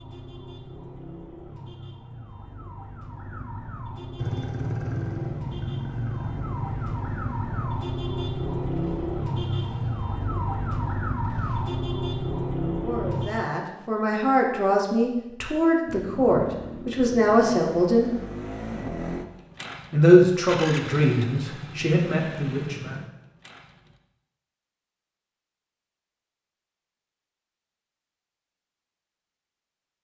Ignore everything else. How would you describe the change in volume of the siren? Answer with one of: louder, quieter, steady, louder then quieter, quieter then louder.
louder.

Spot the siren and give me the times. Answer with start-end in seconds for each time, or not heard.
0.0-13.4.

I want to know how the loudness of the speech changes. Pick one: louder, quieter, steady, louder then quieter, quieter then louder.
louder then quieter.